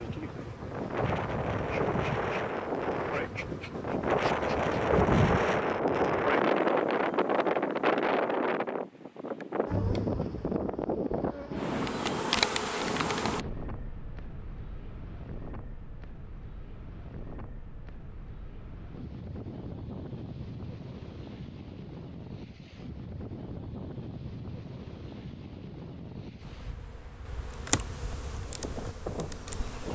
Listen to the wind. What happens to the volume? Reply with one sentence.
The volume of the wind goes down.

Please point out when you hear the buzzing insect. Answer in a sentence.
You can hear the buzzing insect from 0.0 to 5.5 s, from 9.7 to 13.4 s and from 26.4 to 29.9 s.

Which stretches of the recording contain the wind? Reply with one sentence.
You can hear the wind from 0.0 to 29.9 s.